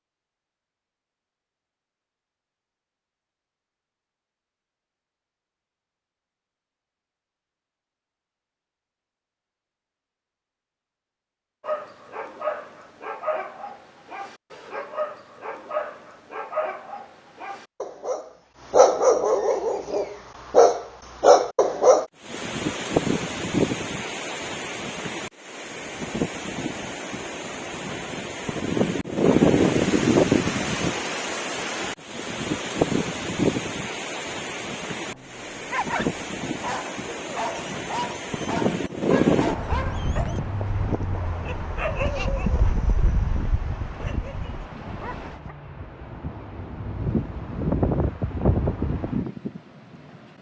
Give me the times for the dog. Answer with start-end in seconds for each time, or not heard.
11.6-22.1, 35.1-45.5.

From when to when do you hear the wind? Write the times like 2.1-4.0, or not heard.
22.2-50.2.